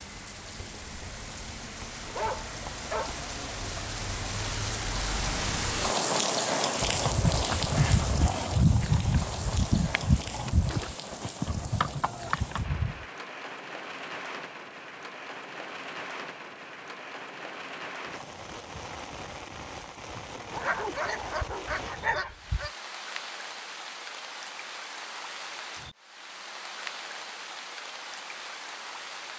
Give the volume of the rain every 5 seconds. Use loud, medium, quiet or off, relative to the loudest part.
medium, loud, medium, medium, medium, medium.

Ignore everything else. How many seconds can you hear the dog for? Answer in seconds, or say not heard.
4 s.